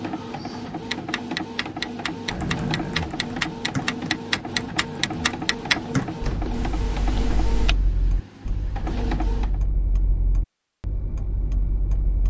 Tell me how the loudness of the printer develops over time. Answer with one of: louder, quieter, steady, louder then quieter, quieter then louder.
steady.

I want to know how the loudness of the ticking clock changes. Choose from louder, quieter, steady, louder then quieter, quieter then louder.
louder then quieter.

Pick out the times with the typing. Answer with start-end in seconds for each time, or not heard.
2.2-7.8.